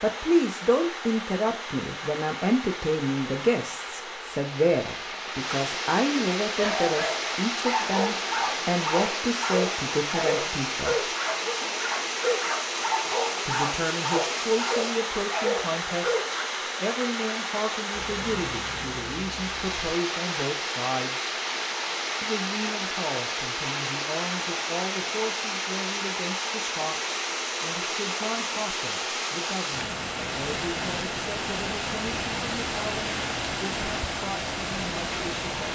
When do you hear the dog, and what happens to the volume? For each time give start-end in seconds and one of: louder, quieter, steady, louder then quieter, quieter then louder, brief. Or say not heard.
6.4-16.4 steady.